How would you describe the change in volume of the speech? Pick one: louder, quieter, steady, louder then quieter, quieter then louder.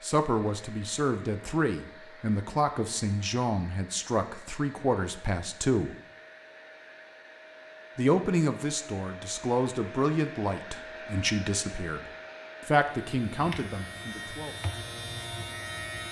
steady.